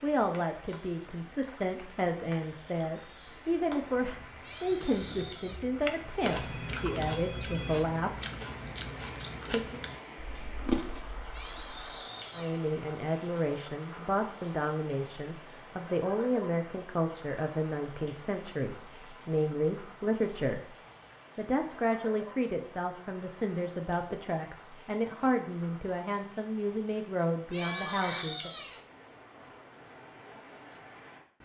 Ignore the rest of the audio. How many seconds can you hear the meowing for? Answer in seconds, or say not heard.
4 s.